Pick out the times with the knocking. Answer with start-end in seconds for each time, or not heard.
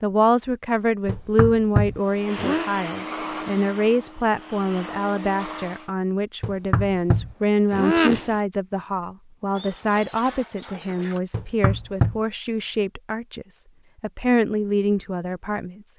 1.1-2.6, 6.4-8.3, 11.3-12.2.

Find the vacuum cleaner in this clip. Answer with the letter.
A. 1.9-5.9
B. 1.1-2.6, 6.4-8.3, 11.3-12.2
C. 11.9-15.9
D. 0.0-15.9
A.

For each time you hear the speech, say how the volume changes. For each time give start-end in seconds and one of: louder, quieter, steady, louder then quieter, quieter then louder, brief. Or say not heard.
0.0-15.9 steady.